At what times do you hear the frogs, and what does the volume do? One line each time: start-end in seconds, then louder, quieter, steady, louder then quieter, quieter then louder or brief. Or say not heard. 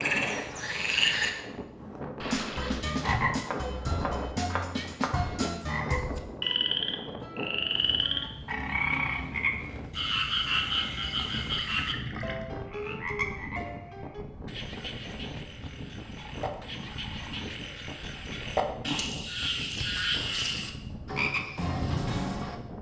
0.0-22.6 quieter then louder.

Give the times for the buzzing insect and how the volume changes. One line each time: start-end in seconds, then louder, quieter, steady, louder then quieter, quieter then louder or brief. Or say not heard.
not heard.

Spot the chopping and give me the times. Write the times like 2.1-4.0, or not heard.
3.5-5.2.